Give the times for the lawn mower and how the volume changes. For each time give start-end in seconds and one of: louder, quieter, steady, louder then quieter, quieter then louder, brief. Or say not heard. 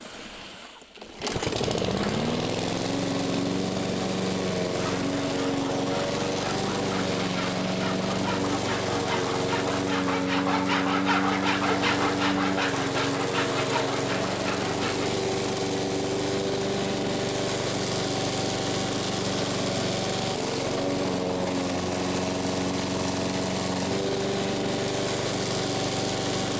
0.0-26.5 steady.